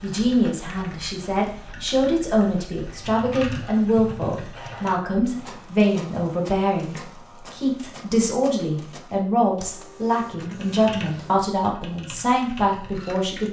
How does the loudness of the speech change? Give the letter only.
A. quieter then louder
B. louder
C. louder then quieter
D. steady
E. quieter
D.